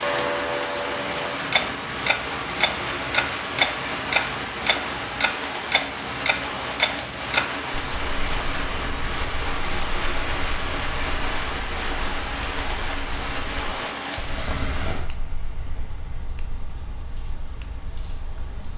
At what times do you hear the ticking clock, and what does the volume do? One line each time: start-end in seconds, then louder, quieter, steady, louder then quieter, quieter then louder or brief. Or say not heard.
0.0-18.7 quieter.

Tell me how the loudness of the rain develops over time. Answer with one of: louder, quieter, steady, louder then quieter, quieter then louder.
quieter.